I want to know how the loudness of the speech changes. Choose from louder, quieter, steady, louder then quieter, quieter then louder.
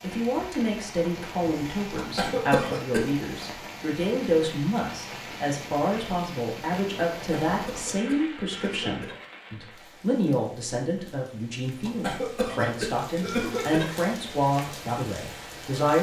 steady.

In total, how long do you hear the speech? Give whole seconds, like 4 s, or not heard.
16 s.